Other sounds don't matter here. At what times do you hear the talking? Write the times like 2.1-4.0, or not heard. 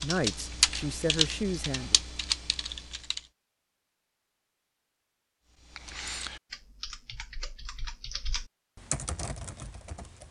0.0-2.0.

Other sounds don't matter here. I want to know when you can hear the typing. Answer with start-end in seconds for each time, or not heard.
0.0-3.2, 5.6-10.2.